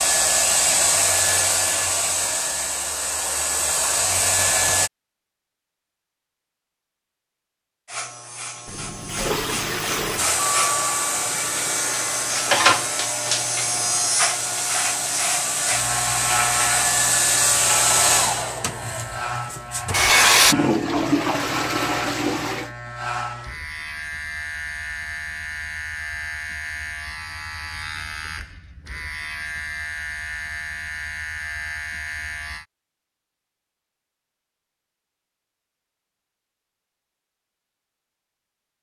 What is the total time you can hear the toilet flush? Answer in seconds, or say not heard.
4 s.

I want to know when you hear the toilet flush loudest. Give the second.
21 s.